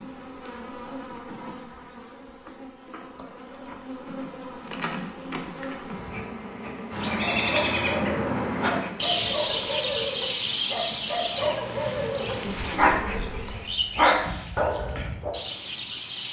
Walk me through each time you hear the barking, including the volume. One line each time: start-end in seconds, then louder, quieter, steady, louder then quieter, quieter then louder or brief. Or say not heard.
7.4-15.4 louder.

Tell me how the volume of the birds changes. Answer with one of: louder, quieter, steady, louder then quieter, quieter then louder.
quieter.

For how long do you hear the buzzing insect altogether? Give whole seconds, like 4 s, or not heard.
14 s.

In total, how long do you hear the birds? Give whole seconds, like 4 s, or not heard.
9 s.